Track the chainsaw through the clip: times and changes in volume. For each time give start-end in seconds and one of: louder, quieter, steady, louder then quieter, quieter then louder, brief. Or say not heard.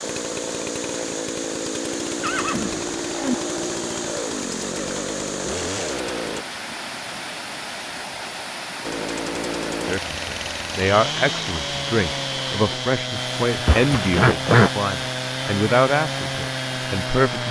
0.0-6.5 steady
8.8-17.4 steady.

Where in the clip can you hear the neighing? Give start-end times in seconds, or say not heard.
2.2-3.4, 13.7-14.7.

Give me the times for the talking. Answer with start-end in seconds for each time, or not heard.
9.8-17.4.